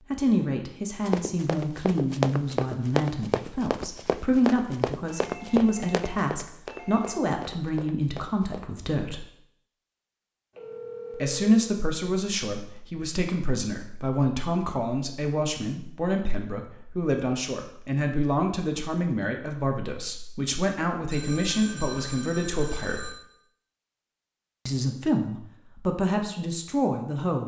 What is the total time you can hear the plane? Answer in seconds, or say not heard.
not heard.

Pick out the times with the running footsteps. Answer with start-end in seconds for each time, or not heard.
1.1-8.7.